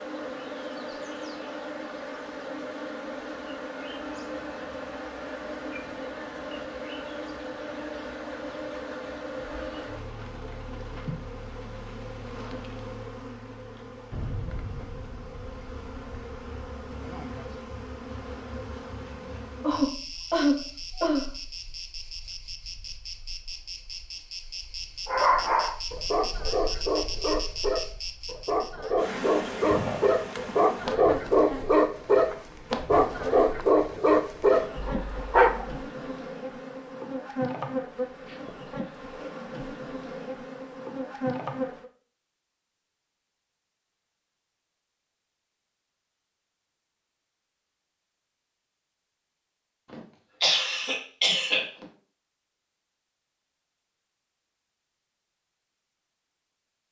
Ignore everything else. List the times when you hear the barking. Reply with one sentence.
The barking can be heard from 25.1 to 35.8 s.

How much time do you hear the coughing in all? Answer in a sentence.
You can hear the coughing for 3 seconds altogether.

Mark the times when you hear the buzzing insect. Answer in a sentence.
You can hear the buzzing insect from 0.0 to 41.9 s.